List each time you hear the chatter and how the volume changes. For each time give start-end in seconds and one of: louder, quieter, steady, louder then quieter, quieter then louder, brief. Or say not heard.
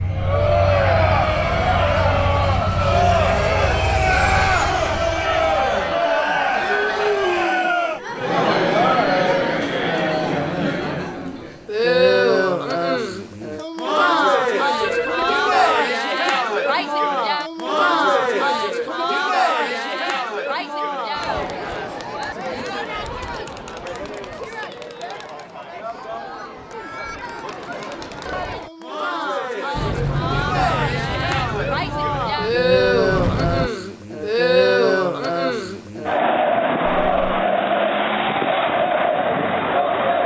0.1-40.2 quieter then louder.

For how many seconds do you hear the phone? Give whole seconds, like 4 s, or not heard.
2 s.